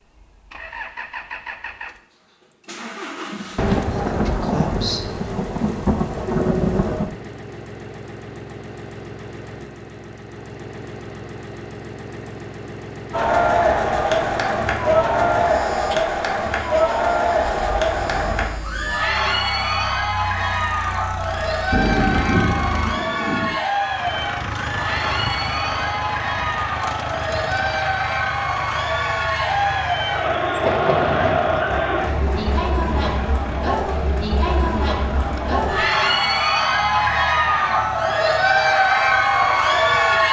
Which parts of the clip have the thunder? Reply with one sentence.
The thunder can be heard from 3.5 to 7.1 s, from 21.7 to 23.6 s and from 30.6 to 32.9 s.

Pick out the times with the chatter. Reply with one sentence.
You can hear the chatter from 13.1 to 40.2 s.